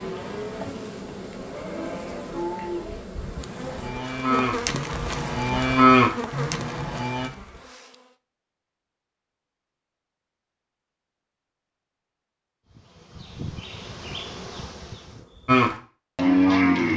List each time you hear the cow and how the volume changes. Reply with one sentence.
The cow can be heard from 0.0 to 7.3 s, getting louder; and briefly from 15.4 to 16.9 s.